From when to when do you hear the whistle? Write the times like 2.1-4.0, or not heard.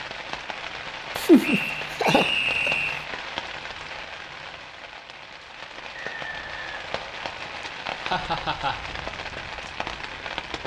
1.4-3.0, 5.9-7.7.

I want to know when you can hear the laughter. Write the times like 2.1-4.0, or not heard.
1.1-2.7, 7.6-8.8.